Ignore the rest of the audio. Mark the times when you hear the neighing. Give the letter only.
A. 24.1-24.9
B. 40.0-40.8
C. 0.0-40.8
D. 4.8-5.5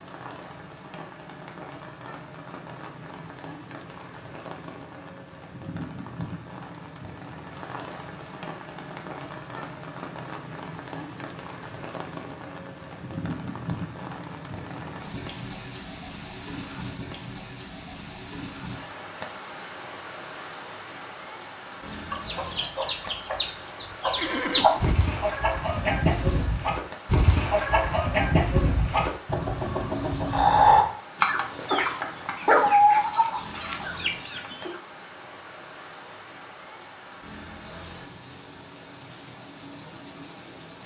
A.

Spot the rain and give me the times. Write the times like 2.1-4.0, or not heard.
0.0-40.8.